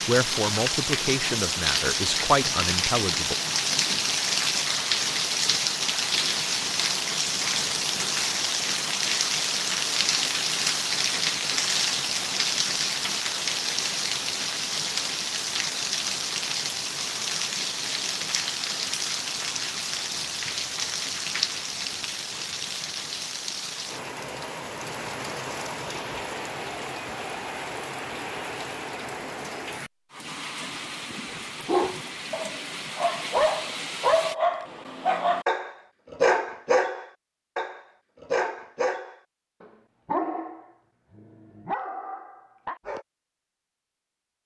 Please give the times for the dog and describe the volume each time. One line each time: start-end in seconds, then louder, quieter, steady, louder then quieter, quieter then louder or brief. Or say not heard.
31.6-43.0 quieter.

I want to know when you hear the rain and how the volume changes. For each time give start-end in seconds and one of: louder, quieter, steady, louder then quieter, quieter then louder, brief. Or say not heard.
0.0-34.4 quieter.